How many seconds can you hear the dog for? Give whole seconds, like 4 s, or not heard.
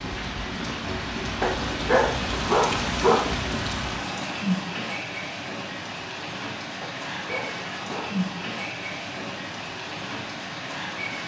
3 s.